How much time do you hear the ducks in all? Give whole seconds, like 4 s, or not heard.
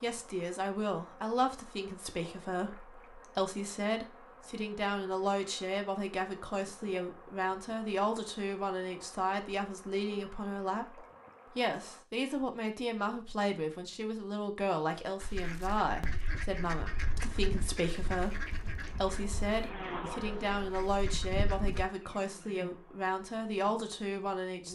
7 s.